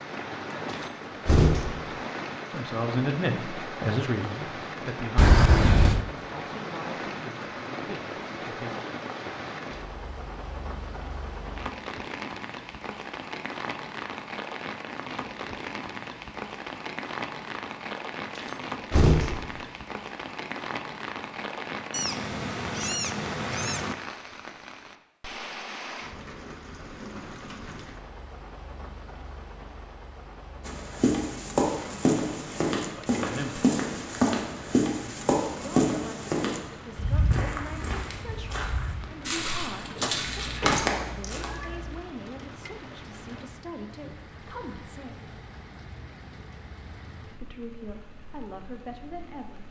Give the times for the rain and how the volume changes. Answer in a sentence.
You can hear the rain from 0.0 to 49.6 s, getting quieter.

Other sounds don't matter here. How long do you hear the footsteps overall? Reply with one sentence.
The footsteps can be heard for 11 seconds in total.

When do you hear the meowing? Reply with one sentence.
The meowing can be heard from 5.2 to 6.0 s, from 21.9 to 23.9 s and from 40.2 to 42.0 s.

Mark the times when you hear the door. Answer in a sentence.
You can hear the door from 0.7 to 1.9 s, from 18.4 to 19.6 s and from 39.9 to 41.0 s.